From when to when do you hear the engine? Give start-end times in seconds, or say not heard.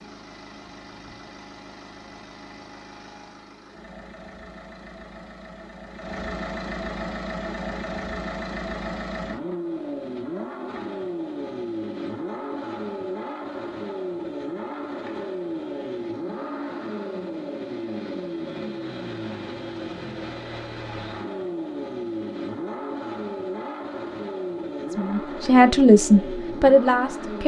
0.0-27.4.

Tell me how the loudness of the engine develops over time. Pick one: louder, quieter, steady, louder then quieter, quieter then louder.
louder.